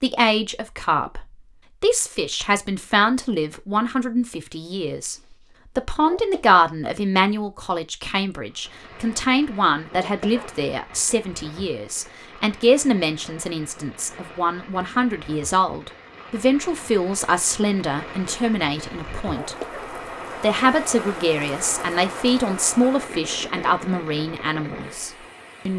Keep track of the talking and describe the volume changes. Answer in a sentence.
The loudness of the talking stays about the same.